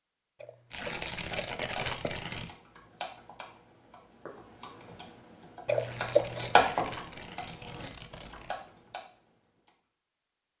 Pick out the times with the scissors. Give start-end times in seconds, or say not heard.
0.4-2.1, 5.7-6.5.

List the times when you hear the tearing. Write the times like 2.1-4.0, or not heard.
0.7-2.5, 5.8-8.6.